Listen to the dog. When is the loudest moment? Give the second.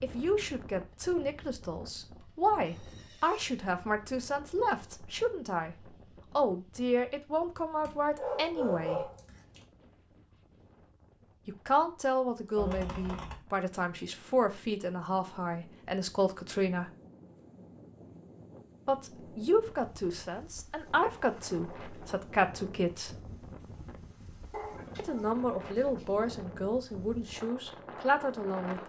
9 s.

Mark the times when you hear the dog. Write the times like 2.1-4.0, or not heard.
7.8-9.6, 24.5-26.1.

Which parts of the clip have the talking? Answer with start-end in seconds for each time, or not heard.
0.0-5.8, 6.3-9.1, 11.4-16.9, 18.9-23.1, 24.9-28.8.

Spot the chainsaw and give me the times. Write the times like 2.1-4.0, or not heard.
not heard.